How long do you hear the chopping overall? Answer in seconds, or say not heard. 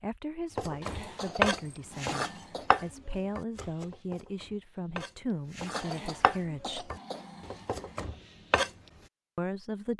8 s.